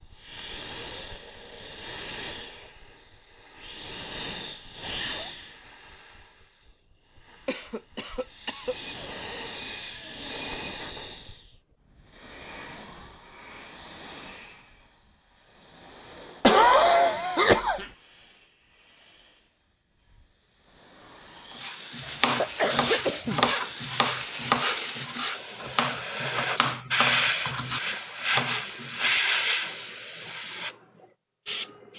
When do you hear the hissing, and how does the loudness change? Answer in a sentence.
The hissing can be heard from 0.0 to 31.9 s, getting quieter then louder.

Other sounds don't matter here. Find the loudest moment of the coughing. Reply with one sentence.
The volume of the coughing peaks at 17 seconds.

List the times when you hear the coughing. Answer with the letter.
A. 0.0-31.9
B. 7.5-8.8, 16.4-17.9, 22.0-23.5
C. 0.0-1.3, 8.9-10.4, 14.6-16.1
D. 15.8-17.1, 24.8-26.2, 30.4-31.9
B.